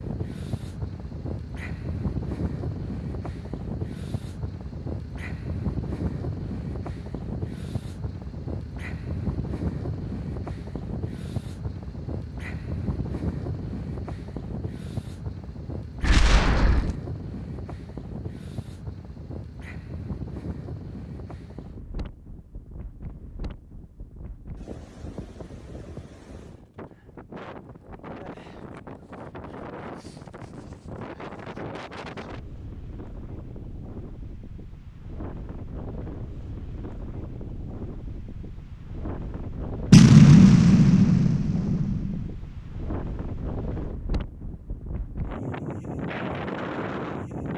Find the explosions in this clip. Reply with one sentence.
You can hear the explosions from 16.0 to 16.9 s and from 39.9 to 42.3 s.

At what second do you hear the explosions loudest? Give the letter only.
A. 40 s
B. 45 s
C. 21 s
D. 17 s
A.